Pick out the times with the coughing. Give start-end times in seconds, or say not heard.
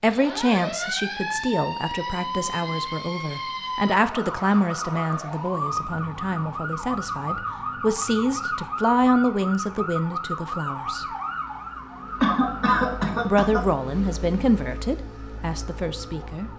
12.2-13.6.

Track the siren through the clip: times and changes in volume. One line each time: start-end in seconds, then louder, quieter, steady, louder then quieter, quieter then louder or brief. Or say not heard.
0.0-16.5 quieter.